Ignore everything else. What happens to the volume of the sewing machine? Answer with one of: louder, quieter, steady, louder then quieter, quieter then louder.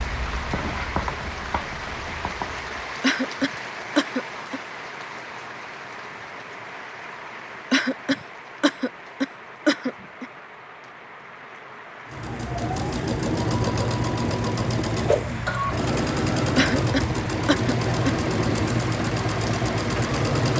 steady.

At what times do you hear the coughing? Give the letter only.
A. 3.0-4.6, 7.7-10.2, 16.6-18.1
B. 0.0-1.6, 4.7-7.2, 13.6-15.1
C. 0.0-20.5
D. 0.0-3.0
A.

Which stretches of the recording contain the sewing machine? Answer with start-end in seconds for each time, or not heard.
12.1-20.5.